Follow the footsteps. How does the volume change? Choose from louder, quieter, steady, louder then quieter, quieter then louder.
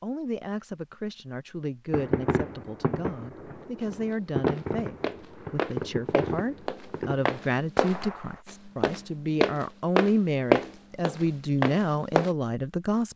louder.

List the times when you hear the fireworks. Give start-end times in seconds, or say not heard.
1.9-8.4.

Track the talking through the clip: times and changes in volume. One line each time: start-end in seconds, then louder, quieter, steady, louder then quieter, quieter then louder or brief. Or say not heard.
0.0-13.1 louder.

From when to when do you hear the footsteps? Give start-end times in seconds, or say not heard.
3.8-12.3.